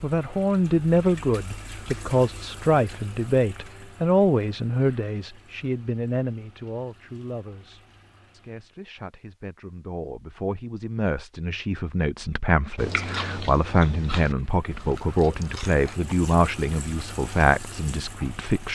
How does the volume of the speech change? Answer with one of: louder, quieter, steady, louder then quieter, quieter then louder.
quieter then louder.